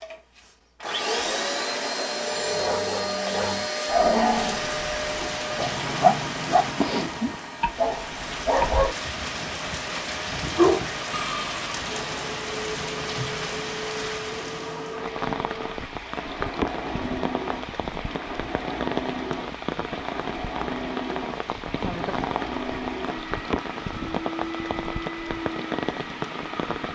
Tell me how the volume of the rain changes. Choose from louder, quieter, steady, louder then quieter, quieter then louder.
steady.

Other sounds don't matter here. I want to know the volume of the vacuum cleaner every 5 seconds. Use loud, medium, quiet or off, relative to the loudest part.
loud, medium, medium, medium, medium, medium.